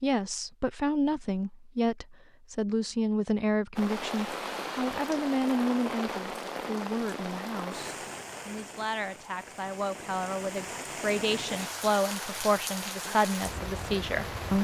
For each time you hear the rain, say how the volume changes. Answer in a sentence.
You can hear the rain from 3.8 to 14.5 s, getting quieter then louder.